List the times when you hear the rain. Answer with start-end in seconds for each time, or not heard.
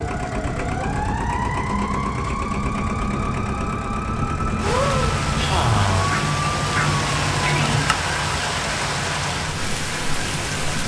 4.6-10.8.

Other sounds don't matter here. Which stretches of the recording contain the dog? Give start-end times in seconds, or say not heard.
not heard.